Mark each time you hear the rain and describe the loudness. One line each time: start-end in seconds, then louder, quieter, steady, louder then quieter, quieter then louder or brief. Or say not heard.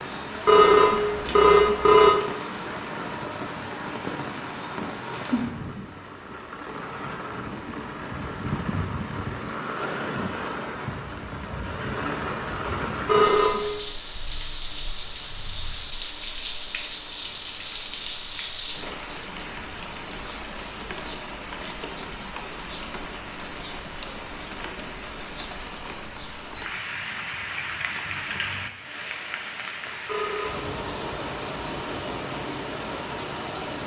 0.0-33.8 steady.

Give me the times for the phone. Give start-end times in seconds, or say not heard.
0.5-2.1, 13.1-13.7, 30.1-30.6.